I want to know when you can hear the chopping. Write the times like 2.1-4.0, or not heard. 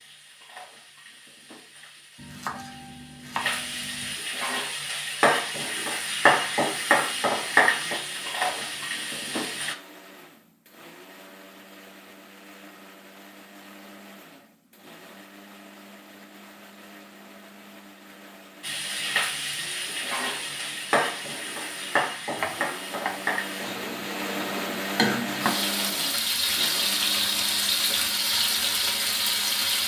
2.1-4.2, 22.4-23.2.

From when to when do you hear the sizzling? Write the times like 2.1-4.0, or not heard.
0.0-9.8, 18.6-29.8.